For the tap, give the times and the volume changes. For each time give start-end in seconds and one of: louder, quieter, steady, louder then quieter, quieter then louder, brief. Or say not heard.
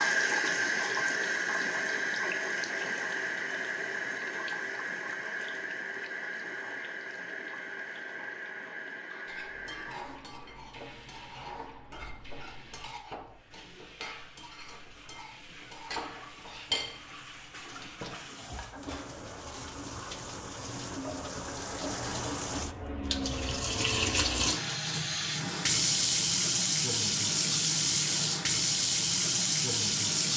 0.0-30.3 quieter then louder.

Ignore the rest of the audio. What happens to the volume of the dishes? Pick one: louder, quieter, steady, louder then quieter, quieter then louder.
louder then quieter.